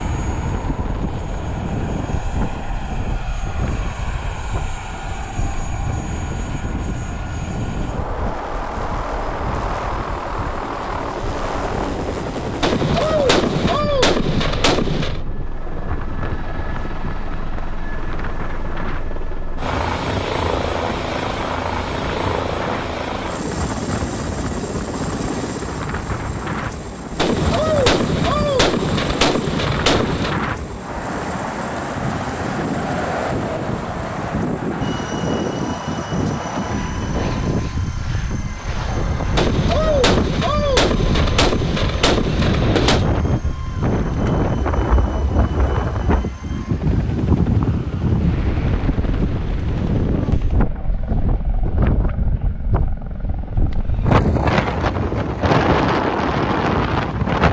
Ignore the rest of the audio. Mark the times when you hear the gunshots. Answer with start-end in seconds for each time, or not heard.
12.6-15.2, 27.1-30.4, 39.4-43.1.